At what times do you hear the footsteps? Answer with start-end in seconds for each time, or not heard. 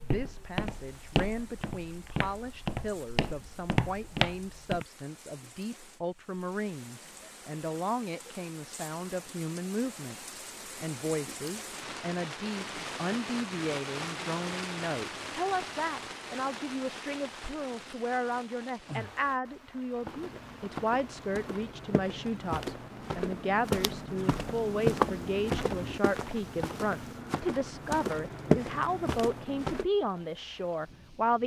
0.0-4.8, 20.0-29.9.